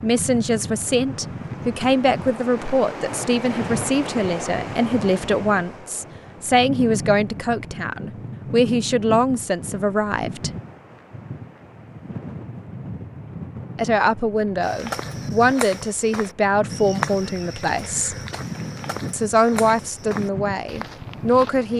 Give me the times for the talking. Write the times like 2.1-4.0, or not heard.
0.0-10.5, 13.8-18.1, 19.1-21.7.